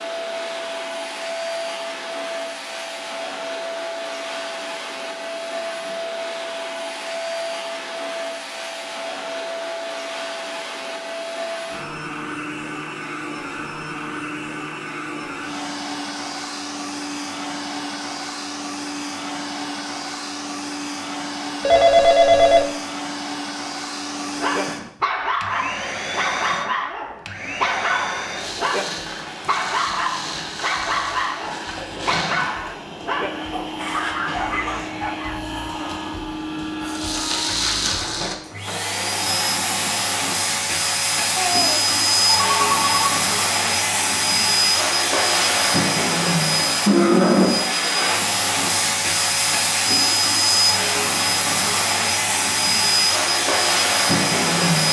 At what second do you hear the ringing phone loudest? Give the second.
22 s.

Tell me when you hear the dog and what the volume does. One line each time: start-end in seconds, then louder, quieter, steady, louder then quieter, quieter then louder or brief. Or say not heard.
24.3-35.4 steady.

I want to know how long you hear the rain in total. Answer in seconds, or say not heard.
not heard.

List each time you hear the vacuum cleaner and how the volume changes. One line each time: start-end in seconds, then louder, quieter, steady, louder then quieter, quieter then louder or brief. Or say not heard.
0.0-54.8 louder.